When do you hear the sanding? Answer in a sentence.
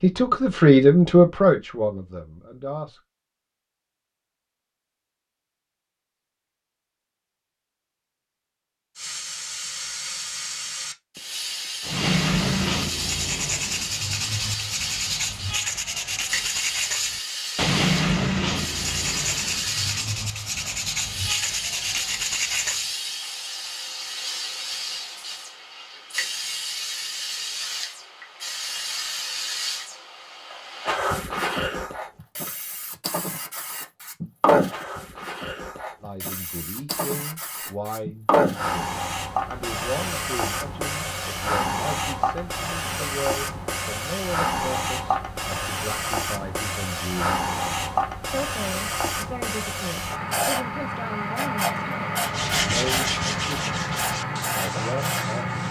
The sanding can be heard from 11.8 to 22.9 s and from 52.2 to 55.6 s.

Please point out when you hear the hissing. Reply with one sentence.
The hissing can be heard from 8.9 to 55.6 s.